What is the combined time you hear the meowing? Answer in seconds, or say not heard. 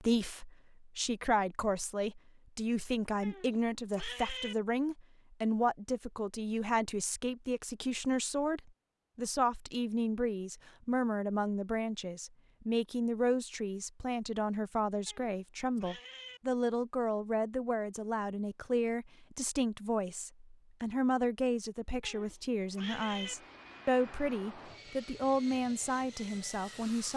4 s.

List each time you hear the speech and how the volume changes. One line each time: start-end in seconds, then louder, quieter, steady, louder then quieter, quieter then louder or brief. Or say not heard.
0.0-27.1 steady.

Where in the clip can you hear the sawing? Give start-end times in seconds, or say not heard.
not heard.